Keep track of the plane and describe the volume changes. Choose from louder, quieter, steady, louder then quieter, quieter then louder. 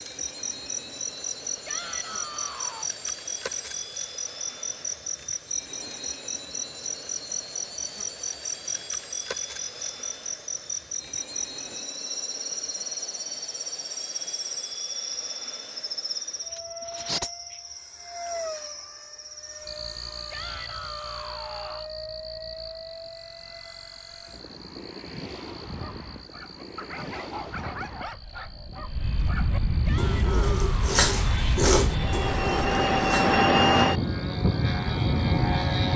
louder.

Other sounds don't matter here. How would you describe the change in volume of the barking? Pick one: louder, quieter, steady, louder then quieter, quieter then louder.
louder.